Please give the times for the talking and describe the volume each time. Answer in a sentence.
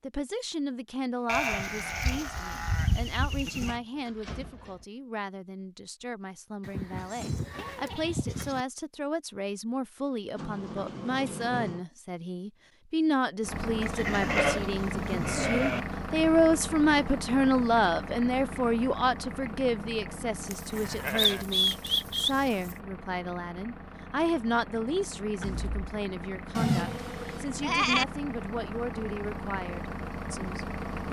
You can hear the talking from 0.0 to 31.0 s, getting louder then quieter.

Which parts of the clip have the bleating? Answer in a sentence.
You can hear the bleating from 1.2 to 3.8 s, from 6.6 to 8.7 s, from 13.8 to 15.8 s, from 20.5 to 22.8 s and from 26.6 to 28.1 s.